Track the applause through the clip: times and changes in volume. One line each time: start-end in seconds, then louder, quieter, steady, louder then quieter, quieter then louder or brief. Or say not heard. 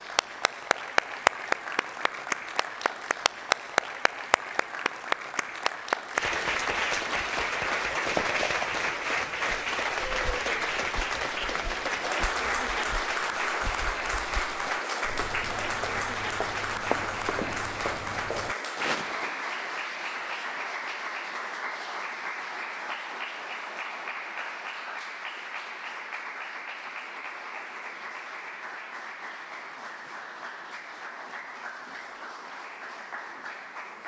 0.0-34.0 quieter.